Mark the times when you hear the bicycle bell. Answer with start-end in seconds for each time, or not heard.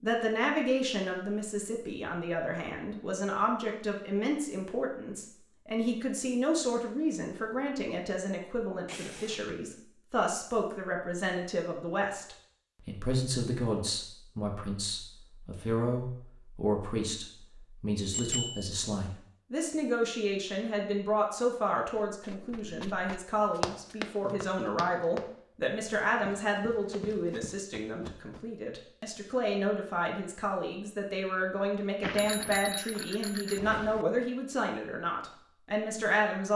8.8-9.6, 18.1-18.7, 32.0-34.0.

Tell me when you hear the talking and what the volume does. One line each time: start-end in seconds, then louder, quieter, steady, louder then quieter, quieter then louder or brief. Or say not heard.
0.0-36.5 steady.